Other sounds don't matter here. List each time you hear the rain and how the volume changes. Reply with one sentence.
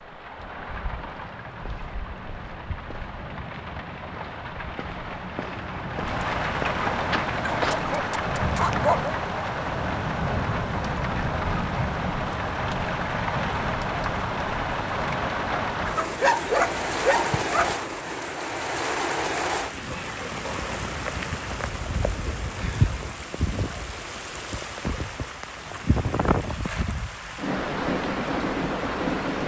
The rain can be heard from 0.0 to 29.4 s, getting louder.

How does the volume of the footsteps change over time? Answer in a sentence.
The volume of the footsteps goes up.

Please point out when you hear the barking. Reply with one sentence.
The barking can be heard from 7.5 to 9.2 s and from 15.9 to 17.8 s.